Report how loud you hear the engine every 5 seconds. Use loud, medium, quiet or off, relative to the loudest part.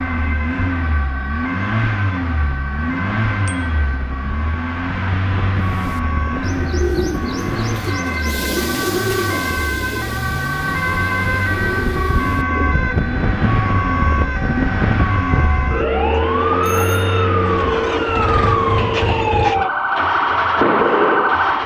medium, medium, medium, medium, loud.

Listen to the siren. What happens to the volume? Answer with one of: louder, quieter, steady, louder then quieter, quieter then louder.
louder.